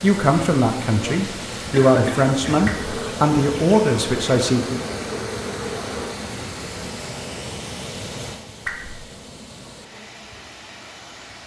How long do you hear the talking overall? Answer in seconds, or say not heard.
5 s.